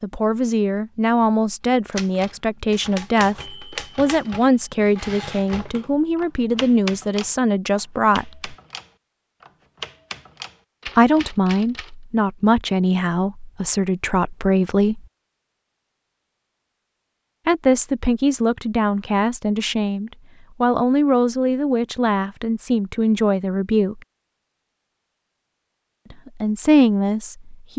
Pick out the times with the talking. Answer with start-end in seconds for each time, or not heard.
0.0-8.6, 10.9-15.1, 17.4-24.0, 26.1-27.7.